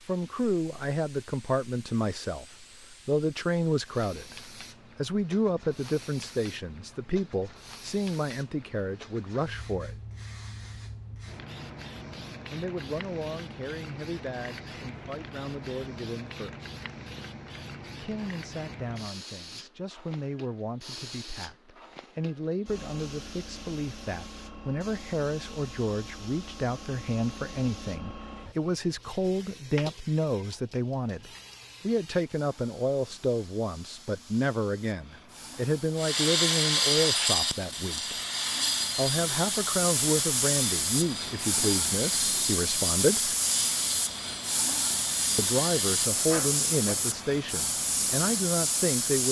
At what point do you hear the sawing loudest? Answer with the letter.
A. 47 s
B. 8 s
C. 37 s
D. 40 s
C.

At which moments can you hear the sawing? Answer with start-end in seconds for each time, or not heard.
36.0-47.2.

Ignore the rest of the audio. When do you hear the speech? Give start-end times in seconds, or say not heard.
0.1-2.5, 3.0-10.0, 12.5-16.7, 17.9-38.1, 39.0-43.4, 45.4-49.2.